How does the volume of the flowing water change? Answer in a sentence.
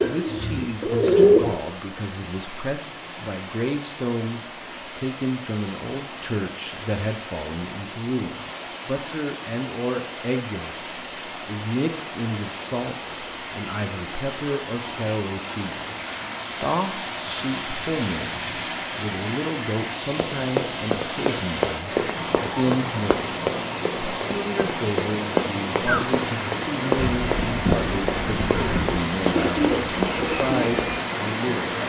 The loudness of the flowing water goes up.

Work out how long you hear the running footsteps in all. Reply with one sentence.
You can hear the running footsteps for 11 seconds altogether.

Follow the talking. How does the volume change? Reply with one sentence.
The volume of the talking stays about the same.